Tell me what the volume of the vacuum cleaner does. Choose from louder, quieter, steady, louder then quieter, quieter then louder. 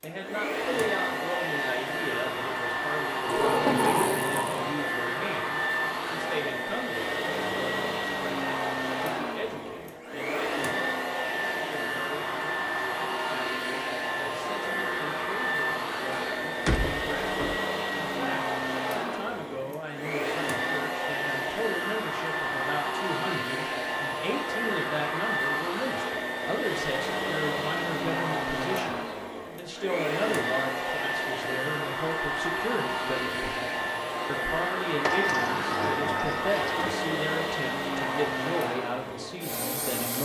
steady.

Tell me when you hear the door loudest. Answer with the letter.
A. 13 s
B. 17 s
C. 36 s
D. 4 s
D.